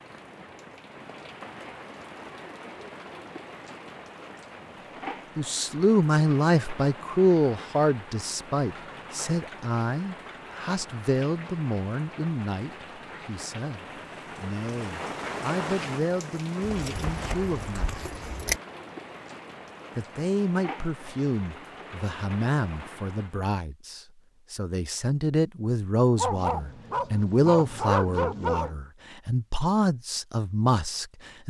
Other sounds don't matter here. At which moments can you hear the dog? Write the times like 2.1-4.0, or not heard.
26.1-28.8.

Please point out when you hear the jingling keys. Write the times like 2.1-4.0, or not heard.
16.6-18.6.